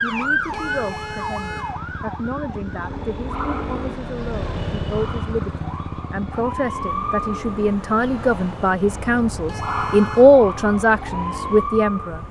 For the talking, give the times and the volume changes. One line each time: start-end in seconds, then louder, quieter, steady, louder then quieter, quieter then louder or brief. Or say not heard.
0.0-12.2 louder.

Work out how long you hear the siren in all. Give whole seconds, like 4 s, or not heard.
12 s.